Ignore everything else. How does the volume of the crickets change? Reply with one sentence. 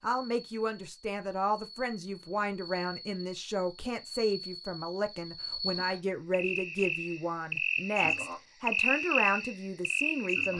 The loudness of the crickets goes up.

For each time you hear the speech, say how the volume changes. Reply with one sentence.
The speech can be heard from 0.0 to 10.5 s, at a steady volume.